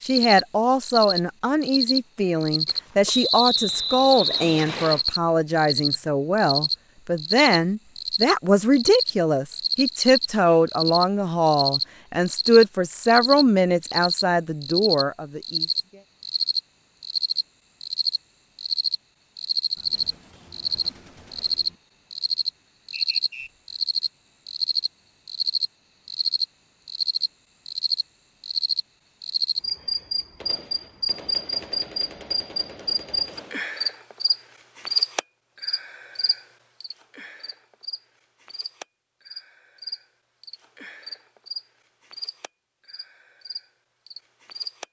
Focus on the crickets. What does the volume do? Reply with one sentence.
The loudness of the crickets goes down.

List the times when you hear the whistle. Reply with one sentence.
You can hear the whistle from 3.0 to 5.0 s and from 22.9 to 23.5 s.